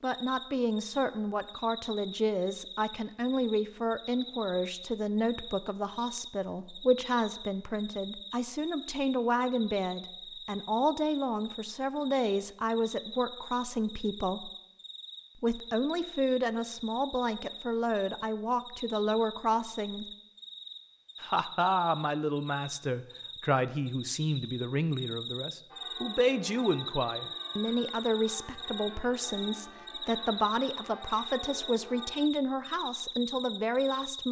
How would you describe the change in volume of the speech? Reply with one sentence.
The volume of the speech stays about the same.